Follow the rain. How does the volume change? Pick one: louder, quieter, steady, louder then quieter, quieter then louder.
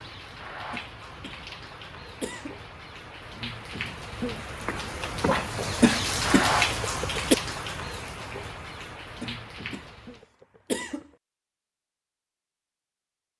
louder then quieter.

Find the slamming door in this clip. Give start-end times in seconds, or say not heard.
not heard.